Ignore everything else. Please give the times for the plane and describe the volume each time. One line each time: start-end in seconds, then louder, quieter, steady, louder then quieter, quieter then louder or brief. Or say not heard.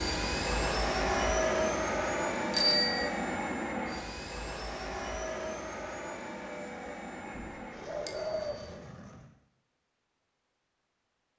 0.0-9.3 quieter.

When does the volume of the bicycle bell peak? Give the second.
3 s.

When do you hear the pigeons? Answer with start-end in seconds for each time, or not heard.
7.2-8.7.